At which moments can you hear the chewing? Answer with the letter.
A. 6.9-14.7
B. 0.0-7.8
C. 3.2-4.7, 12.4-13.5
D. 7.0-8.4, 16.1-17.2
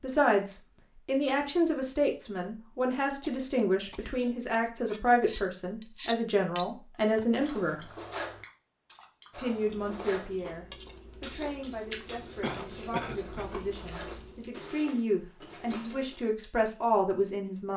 A.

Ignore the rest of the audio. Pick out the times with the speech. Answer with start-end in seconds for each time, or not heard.
0.0-7.9, 9.3-17.7.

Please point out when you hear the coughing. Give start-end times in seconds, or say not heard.
3.2-4.7, 12.4-13.5.